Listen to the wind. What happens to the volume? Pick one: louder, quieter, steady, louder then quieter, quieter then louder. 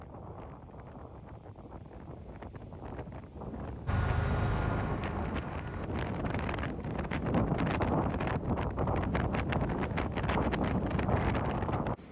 louder.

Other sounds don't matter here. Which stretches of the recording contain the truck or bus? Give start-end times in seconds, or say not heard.
3.9-5.9.